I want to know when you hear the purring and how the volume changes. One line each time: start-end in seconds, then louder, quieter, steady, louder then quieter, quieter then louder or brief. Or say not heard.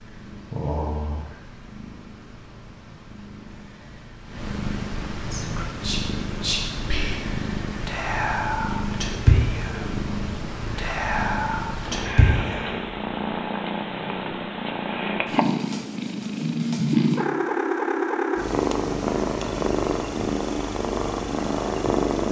0.0-22.2 louder.